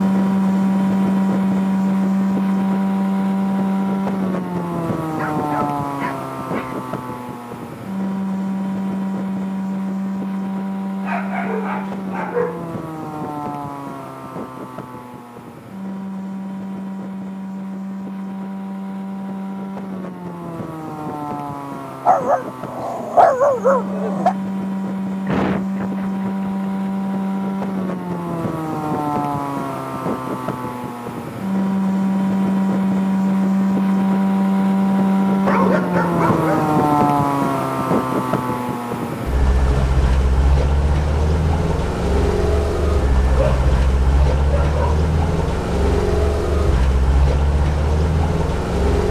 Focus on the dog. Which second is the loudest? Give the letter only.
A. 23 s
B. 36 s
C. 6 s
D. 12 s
A.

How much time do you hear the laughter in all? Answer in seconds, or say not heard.
2 s.